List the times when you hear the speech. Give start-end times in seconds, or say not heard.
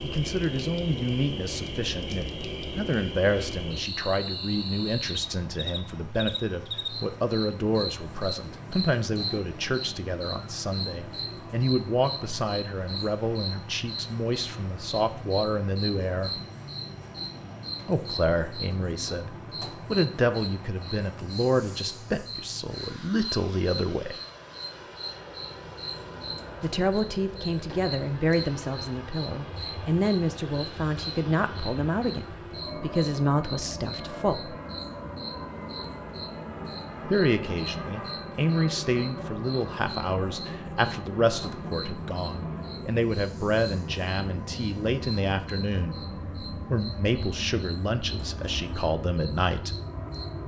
0.0-16.4, 17.9-24.2, 26.6-34.5, 37.0-49.8.